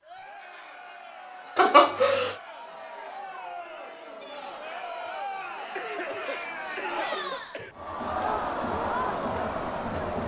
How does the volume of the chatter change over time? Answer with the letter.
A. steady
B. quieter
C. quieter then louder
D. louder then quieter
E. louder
E.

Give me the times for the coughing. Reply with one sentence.
The coughing can be heard from 1.6 to 2.4 s and from 5.8 to 7.8 s.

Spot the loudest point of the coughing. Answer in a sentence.
The loudest moment of the coughing is at 2 seconds.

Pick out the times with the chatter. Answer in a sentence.
You can hear the chatter from 0.0 to 10.2 s.